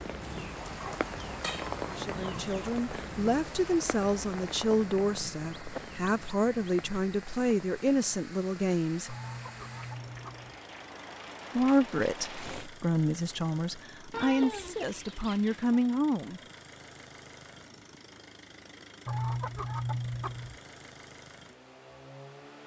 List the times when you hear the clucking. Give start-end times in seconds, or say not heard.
0.2-2.7, 5.4-7.0, 9.1-10.6, 14.1-15.8, 19.1-20.6.